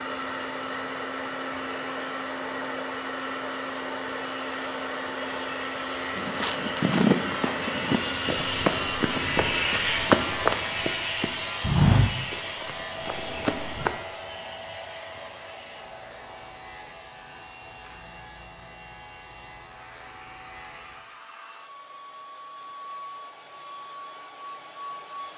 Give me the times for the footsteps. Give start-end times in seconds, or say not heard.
6.2-13.9.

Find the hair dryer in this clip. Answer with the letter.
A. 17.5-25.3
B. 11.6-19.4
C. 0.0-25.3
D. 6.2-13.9
C.